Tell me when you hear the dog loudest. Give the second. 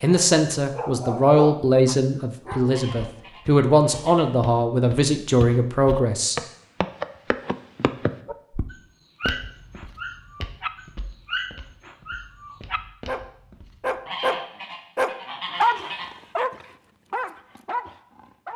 16 s.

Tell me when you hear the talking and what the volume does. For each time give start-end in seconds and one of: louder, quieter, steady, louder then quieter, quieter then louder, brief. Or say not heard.
0.0-6.3 steady.